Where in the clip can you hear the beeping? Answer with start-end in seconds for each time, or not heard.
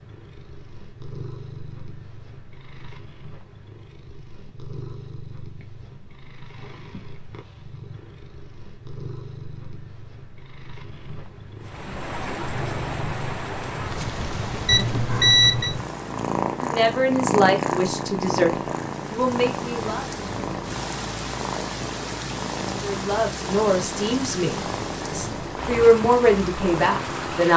14.7-15.8.